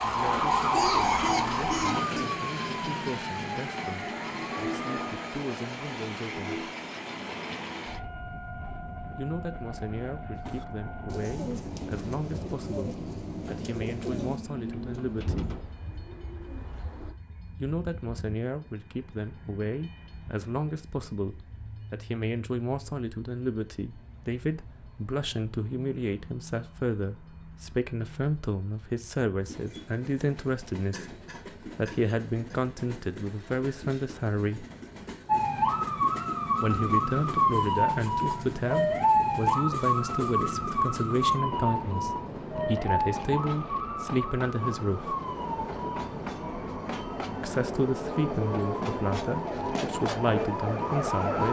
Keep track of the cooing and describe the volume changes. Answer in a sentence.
The volume of the cooing goes down.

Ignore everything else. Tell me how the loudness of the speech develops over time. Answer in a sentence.
The loudness of the speech goes up.